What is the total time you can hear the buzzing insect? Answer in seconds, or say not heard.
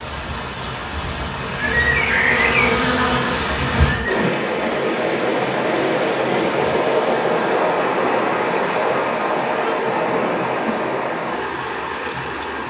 3 s.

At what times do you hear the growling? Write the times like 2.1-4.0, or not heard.
not heard.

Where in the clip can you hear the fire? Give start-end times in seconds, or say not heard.
not heard.